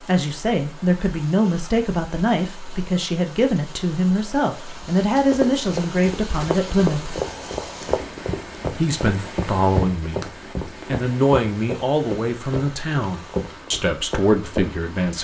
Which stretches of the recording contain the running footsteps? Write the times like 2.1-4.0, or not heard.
5.2-14.8.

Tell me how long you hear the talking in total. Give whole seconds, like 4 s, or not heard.
13 s.